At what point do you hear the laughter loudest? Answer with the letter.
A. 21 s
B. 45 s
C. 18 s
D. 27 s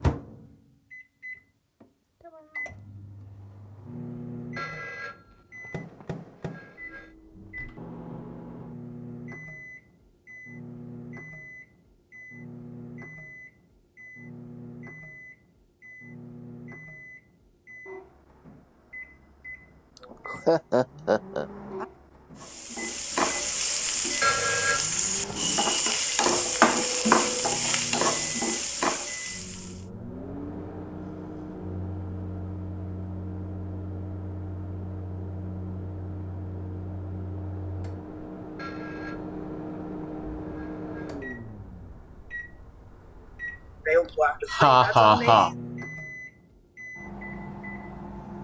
B.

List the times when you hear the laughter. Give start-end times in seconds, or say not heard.
20.2-21.4, 43.9-45.5.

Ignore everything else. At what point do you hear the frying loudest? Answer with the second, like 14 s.
27 s.